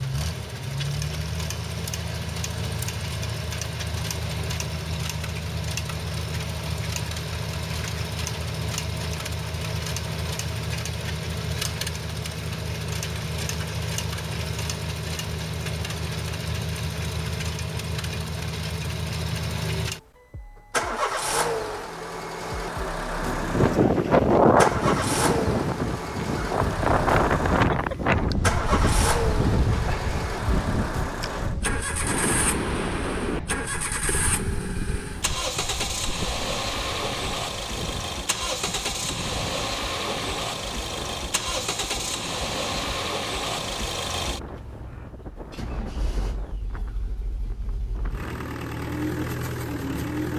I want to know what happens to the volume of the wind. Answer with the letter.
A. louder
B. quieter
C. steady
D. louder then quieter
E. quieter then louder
B.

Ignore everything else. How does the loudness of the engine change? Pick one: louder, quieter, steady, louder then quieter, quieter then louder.
steady.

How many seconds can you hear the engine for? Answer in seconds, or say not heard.
50 s.